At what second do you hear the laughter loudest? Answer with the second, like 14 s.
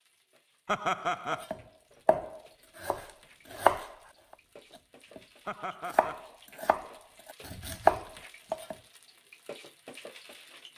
1 s.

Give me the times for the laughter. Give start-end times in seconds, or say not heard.
0.7-1.4, 5.5-6.2.